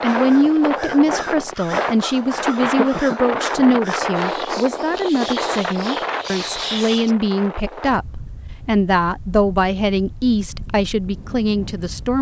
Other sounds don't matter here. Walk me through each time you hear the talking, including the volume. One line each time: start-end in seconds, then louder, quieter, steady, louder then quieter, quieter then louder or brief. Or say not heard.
0.0-12.1 steady.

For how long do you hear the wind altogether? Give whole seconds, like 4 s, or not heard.
12 s.